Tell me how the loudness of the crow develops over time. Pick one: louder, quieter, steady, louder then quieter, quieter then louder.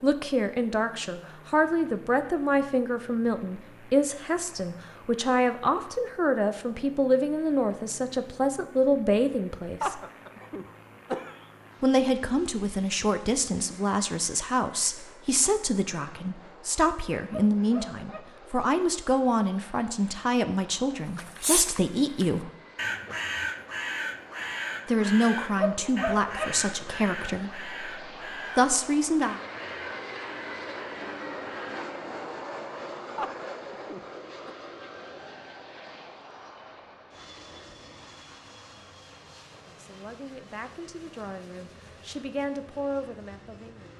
quieter.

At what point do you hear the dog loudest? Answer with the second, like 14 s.
26 s.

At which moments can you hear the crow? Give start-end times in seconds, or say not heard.
21.1-31.9.